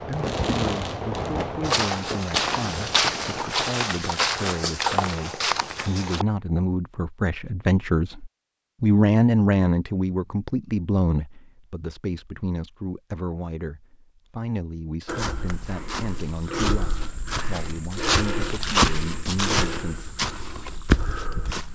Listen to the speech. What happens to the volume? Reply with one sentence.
The volume of the speech goes up, then down.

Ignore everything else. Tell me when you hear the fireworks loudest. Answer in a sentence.
The loudest moment of the fireworks is at 1 second.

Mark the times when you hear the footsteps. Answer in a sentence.
The footsteps can be heard from 1.6 to 6.2 s and from 15.1 to 21.6 s.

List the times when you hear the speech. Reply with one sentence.
The speech can be heard from 0.1 to 20.1 s.